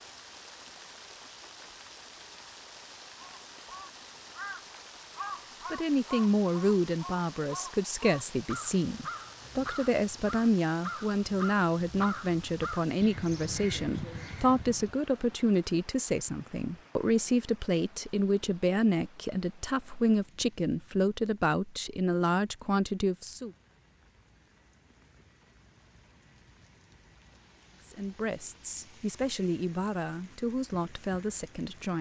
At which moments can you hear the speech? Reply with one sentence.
You can hear the speech from 5.7 to 23.5 s and from 27.9 to 31.9 s.